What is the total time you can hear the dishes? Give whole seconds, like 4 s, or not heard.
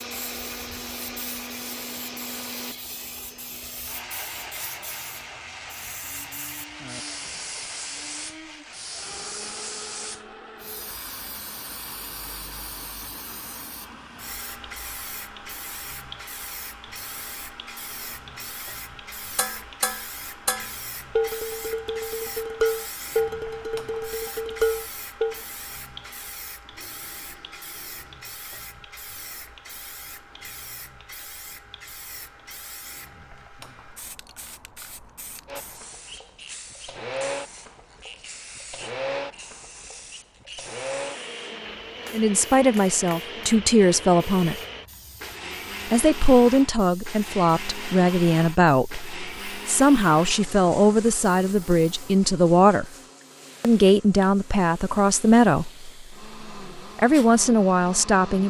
6 s.